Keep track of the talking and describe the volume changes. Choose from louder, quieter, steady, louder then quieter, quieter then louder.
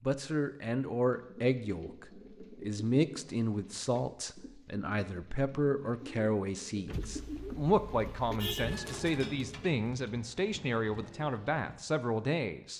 steady.